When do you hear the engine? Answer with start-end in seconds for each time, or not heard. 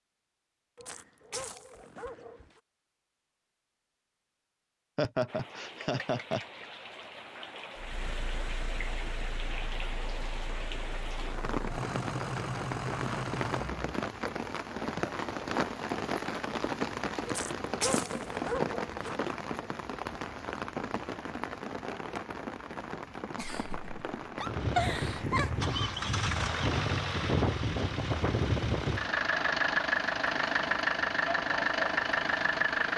7.8-13.9, 24.4-32.9.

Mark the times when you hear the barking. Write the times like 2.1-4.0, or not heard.
0.8-2.6, 17.2-19.2.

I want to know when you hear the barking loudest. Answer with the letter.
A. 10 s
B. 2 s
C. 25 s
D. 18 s
D.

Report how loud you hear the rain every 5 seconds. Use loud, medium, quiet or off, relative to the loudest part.
off, medium, loud, loud, medium, medium, medium.